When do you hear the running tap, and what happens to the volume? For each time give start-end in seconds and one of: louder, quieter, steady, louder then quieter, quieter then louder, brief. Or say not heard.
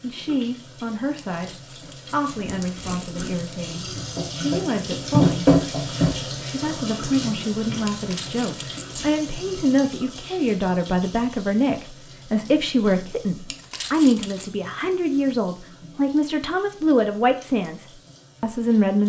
0.0-19.0 louder then quieter.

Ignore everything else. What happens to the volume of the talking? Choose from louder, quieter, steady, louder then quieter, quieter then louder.
louder.